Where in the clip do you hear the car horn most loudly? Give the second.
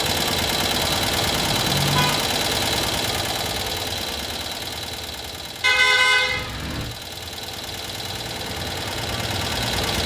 6 s.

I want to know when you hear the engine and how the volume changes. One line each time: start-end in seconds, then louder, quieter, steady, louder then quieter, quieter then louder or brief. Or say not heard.
0.0-10.0 quieter then louder.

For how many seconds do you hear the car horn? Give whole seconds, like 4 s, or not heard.
3 s.